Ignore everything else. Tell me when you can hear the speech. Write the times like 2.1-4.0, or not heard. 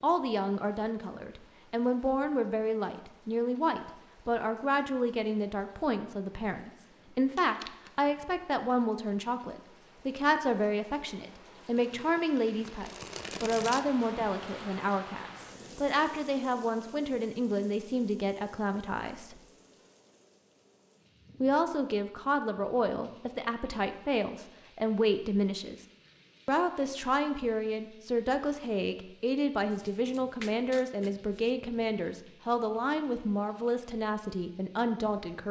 0.0-19.4, 21.4-25.8, 26.4-35.4.